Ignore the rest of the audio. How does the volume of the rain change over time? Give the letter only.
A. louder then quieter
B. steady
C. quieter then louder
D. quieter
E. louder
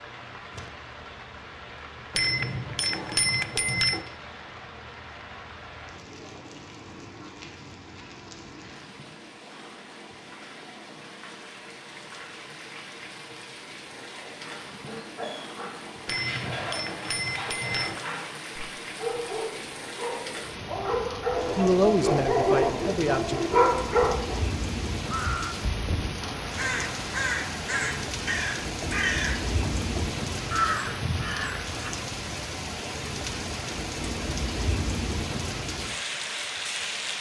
E.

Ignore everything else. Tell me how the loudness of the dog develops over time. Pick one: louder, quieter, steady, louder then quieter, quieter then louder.
louder.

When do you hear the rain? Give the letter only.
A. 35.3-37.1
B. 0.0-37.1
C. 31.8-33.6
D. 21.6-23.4
B.